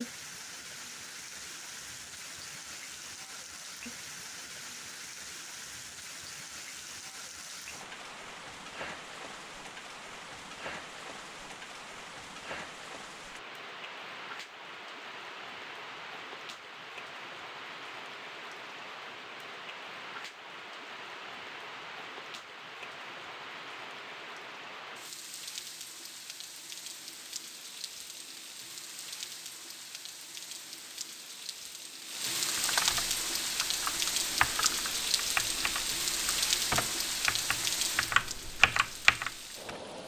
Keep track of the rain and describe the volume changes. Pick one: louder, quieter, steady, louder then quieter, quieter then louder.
louder.